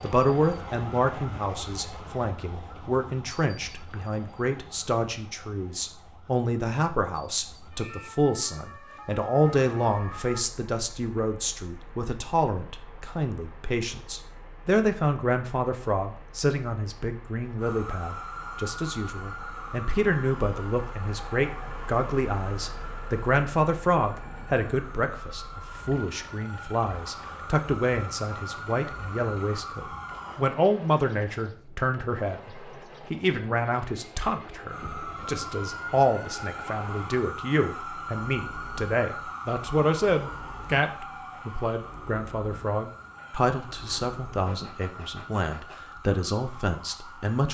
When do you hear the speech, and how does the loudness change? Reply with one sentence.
The speech can be heard from 0.0 to 47.5 s, at a steady volume.